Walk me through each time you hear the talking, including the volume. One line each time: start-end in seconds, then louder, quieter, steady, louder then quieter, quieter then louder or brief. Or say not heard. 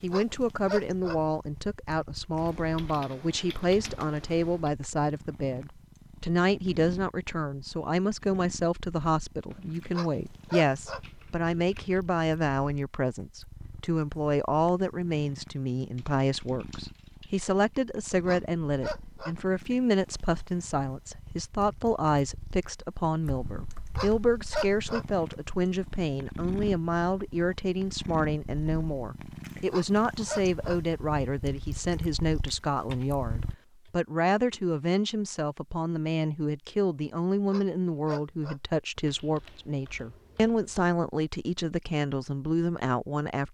0.0-43.4 steady.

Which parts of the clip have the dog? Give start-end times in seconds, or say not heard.
0.1-1.2, 9.9-11.0, 18.2-19.4, 23.9-25.1, 29.7-30.8, 37.5-38.6.